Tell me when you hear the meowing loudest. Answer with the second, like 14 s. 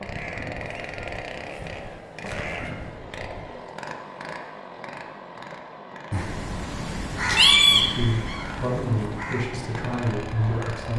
8 s.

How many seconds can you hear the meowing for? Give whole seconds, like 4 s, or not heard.
3 s.